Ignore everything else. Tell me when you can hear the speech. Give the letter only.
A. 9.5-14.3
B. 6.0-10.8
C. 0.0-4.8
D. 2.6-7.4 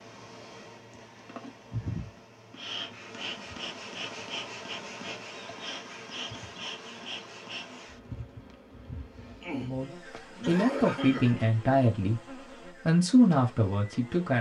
A.